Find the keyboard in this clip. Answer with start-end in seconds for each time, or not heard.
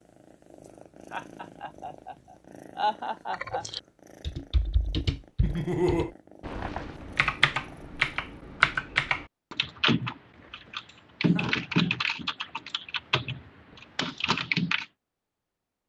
3.3-14.8.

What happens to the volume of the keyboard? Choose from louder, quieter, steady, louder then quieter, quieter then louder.
louder then quieter.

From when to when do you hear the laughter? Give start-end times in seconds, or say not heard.
1.1-3.6, 5.4-6.1, 11.2-11.9.